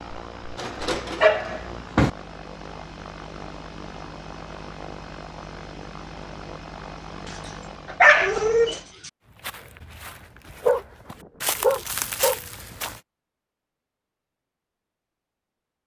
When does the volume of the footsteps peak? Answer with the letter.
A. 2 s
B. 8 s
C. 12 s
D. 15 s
C.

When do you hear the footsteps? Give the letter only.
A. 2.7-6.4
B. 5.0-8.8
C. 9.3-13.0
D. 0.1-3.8
C.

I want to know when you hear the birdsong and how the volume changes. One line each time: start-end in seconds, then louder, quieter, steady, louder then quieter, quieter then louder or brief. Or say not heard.
not heard.